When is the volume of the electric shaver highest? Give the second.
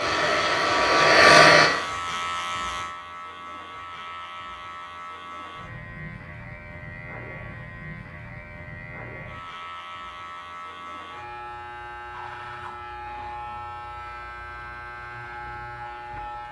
2 s.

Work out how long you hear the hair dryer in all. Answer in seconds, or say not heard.
2 s.